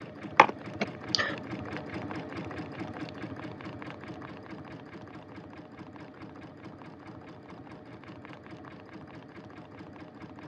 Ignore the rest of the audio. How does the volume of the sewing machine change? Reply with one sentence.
The loudness of the sewing machine goes down.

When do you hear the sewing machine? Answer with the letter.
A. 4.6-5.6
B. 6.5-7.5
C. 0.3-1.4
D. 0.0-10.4
D.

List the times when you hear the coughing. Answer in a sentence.
The coughing can be heard from 0.3 to 1.4 s.